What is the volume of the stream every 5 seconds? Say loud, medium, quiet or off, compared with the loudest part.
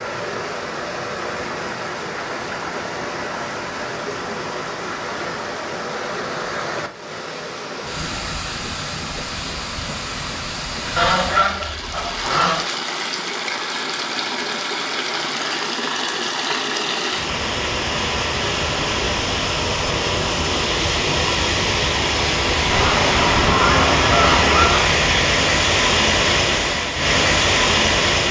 medium, medium, medium, medium, loud, loud.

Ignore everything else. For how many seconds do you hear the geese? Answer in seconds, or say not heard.
4 s.